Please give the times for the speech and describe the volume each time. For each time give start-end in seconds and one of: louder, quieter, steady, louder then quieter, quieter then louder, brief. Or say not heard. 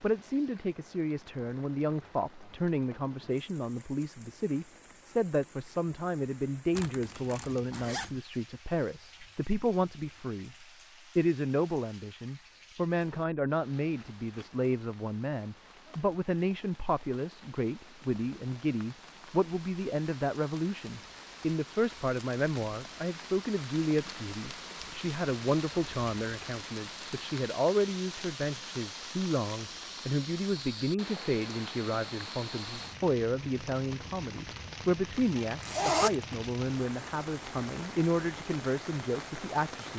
0.0-10.5 steady
11.2-39.9 steady.